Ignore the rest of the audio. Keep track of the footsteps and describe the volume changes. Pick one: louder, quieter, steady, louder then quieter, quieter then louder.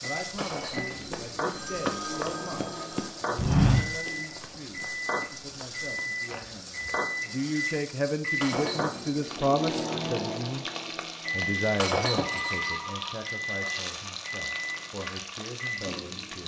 louder then quieter.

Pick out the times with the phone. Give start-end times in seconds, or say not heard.
1.5-3.1, 12.0-13.2.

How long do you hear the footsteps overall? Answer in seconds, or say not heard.
7 s.